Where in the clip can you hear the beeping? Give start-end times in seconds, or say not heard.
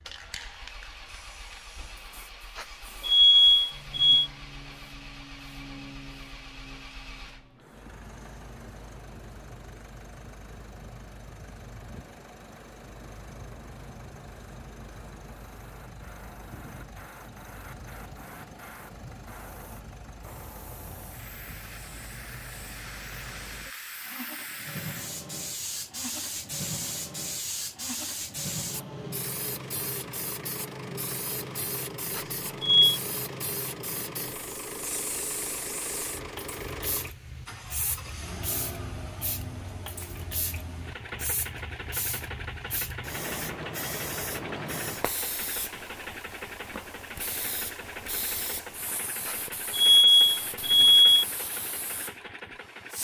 2.5-4.3, 32.1-33.0, 49.2-51.2.